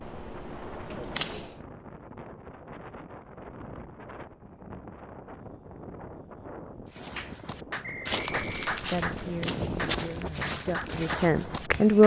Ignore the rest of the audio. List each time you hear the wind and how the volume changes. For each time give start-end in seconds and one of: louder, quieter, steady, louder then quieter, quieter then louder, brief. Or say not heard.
0.0-11.9 louder.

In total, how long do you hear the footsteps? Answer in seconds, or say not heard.
5 s.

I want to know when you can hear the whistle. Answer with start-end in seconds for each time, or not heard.
7.8-8.7.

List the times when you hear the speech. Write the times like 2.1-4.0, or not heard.
8.9-12.0.